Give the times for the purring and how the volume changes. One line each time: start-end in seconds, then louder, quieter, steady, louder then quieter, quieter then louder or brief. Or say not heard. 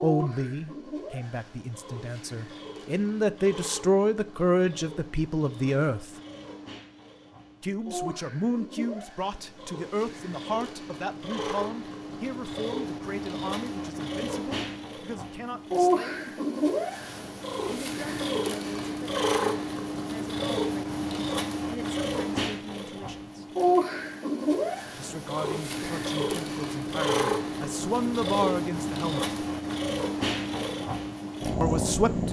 0.0-32.2 louder.